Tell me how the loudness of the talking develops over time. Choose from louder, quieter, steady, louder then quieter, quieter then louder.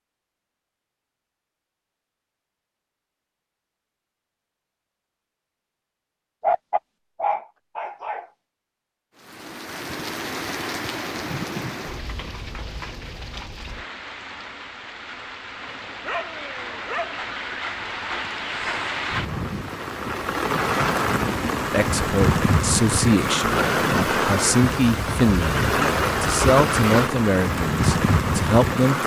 steady.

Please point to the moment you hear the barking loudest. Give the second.
7 s.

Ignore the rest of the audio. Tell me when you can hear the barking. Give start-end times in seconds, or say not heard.
6.4-8.2, 15.6-17.6.